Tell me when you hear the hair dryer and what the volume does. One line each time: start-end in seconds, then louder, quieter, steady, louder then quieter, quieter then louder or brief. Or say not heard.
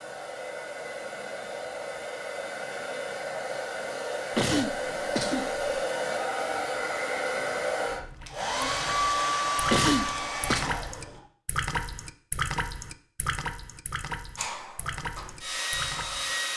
0.0-11.2 louder
14.3-16.5 brief.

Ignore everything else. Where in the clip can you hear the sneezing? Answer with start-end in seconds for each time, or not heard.
4.3-5.7, 9.7-10.7.